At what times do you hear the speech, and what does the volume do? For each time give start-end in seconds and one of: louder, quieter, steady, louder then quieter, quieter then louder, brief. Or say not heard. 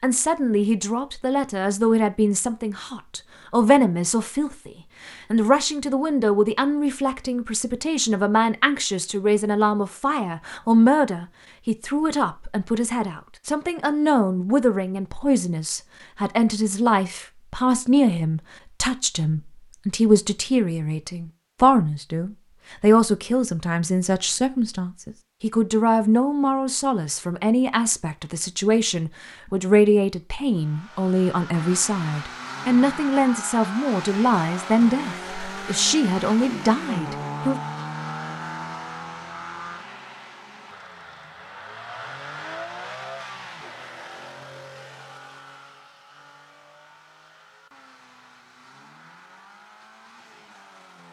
0.0-37.6 steady.